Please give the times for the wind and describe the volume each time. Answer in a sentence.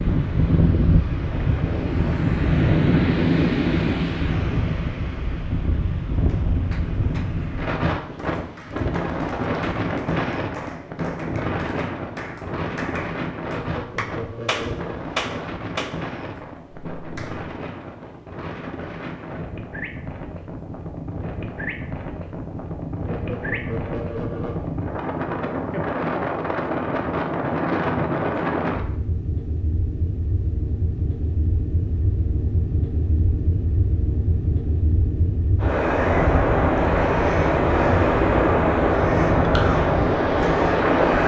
You can hear the wind from 0.0 to 41.2 s, getting quieter then louder.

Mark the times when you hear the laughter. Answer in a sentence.
You can hear the laughter from 13.5 to 14.9 s and from 23.1 to 24.8 s.